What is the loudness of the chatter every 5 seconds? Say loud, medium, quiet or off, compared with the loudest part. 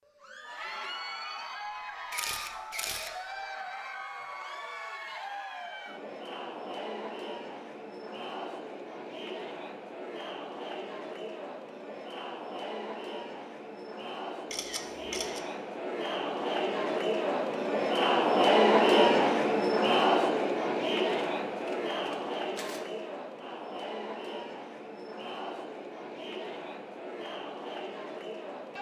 quiet, quiet, quiet, loud, medium, quiet.